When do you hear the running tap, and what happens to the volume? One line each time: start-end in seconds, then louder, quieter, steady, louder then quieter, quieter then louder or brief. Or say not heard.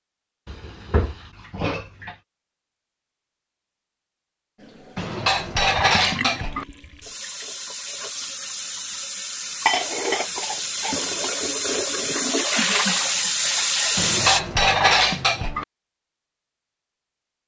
4.5-14.4 louder.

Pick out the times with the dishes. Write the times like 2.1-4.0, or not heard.
0.5-2.1, 5.0-6.7, 9.7-11.3, 13.9-15.7.